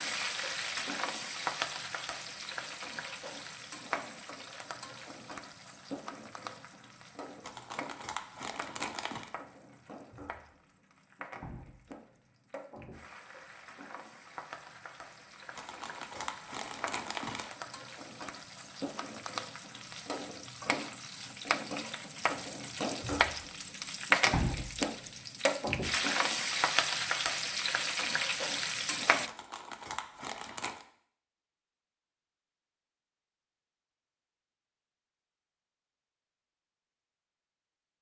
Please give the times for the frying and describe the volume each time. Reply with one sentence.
The frying can be heard from 0.0 to 29.3 s, getting quieter then louder.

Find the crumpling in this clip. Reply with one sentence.
The crumpling can be heard from 7.4 to 9.3 s, from 15.6 to 17.5 s and from 29.2 to 30.9 s.